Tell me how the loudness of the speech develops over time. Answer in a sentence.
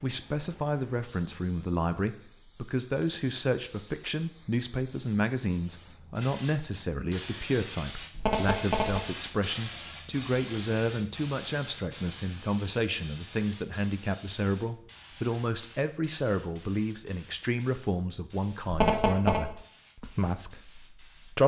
The volume of the speech stays about the same.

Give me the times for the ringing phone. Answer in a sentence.
The ringing phone can be heard from 8.2 to 9.0 s and from 18.6 to 19.4 s.